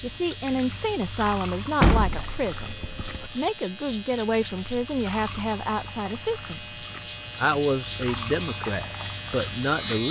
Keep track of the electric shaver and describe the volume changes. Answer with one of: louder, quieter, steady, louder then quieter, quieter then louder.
louder.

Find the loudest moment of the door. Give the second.
2 s.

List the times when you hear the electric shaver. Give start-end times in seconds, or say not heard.
0.0-10.0.